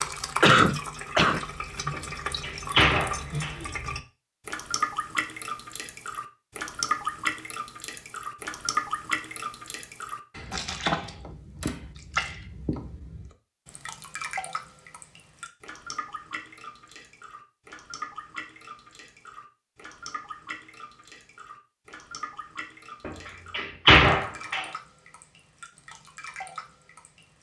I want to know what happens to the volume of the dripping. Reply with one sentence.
The loudness of the dripping goes down.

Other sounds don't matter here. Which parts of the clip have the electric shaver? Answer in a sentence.
You can't hear the electric shaver here.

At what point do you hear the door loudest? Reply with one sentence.
The loudest moment of the door is at 24 seconds.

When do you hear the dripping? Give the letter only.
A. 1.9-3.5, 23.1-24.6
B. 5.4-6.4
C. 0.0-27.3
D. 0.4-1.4
C.